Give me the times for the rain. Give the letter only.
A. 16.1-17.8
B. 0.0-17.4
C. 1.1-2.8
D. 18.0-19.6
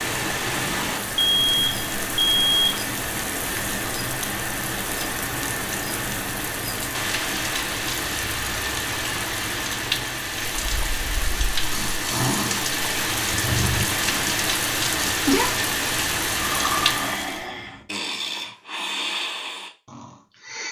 B.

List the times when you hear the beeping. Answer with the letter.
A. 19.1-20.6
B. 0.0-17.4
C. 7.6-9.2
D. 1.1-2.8
D.